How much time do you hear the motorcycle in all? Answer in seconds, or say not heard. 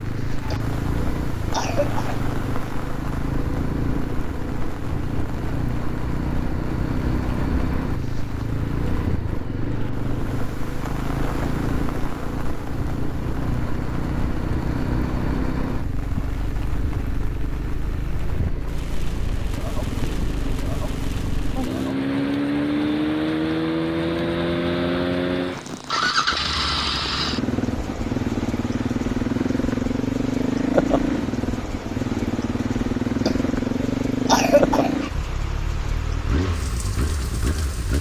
38 s.